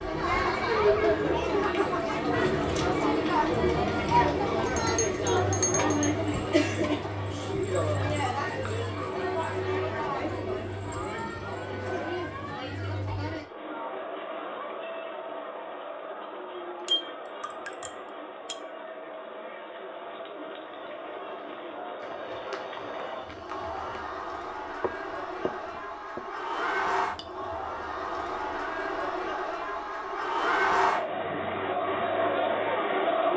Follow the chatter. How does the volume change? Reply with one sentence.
The loudness of the chatter goes down, then up.